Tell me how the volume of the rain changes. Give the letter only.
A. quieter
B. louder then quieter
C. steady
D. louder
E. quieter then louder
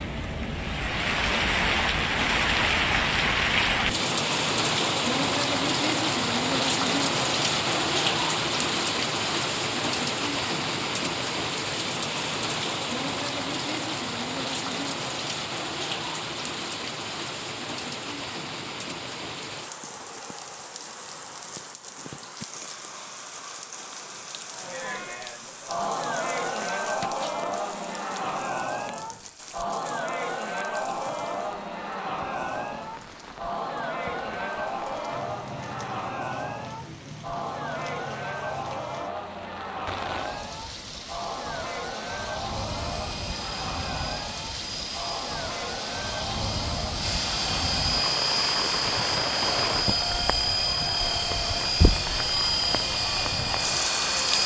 E.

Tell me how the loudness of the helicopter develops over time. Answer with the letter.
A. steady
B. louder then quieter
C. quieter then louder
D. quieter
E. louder
E.